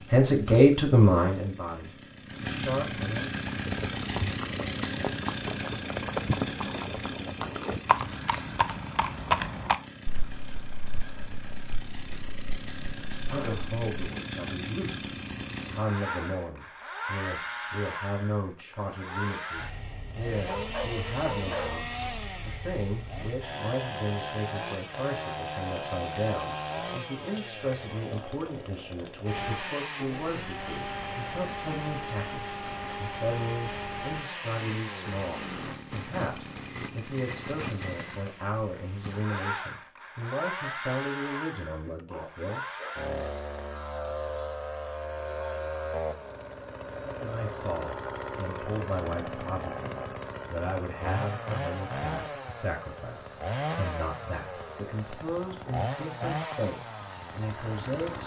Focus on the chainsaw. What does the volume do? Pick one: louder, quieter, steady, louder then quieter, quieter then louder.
steady.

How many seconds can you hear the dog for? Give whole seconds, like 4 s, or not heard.
3 s.